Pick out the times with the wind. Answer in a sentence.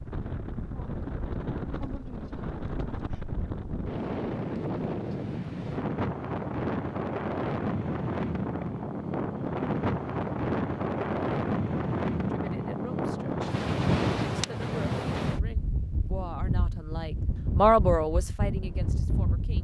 You can hear the wind from 0.0 to 19.5 s.